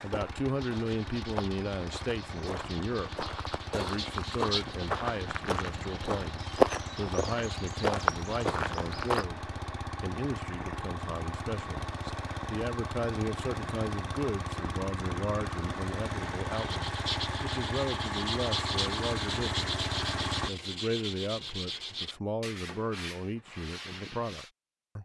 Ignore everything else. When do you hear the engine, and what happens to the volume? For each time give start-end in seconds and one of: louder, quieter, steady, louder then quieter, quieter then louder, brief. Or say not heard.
0.0-20.5 louder.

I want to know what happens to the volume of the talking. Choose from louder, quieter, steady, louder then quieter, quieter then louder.
steady.